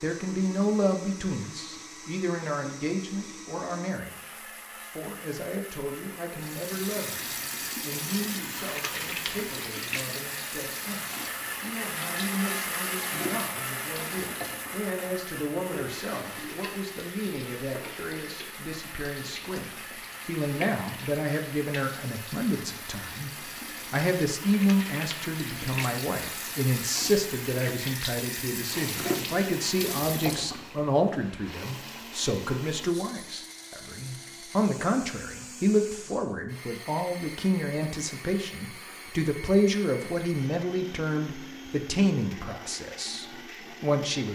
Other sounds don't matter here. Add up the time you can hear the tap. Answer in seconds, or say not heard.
25 s.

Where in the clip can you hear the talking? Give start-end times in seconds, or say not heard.
0.0-23.3, 23.9-44.3.